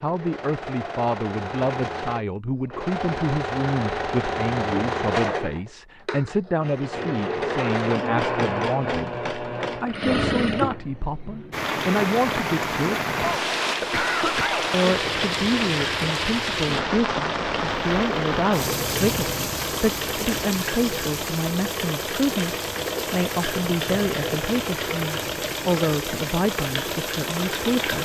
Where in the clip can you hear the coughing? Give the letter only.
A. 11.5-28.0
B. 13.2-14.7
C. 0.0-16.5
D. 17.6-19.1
B.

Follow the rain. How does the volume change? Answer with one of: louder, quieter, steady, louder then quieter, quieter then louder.
quieter.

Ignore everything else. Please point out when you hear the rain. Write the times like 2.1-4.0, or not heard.
11.5-28.0.